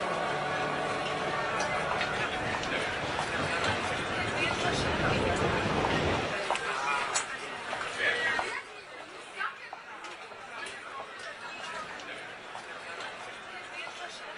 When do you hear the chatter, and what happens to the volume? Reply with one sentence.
The chatter can be heard from 0.0 to 14.3 s, getting quieter.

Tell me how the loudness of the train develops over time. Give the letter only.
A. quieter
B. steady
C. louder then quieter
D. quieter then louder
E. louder
E.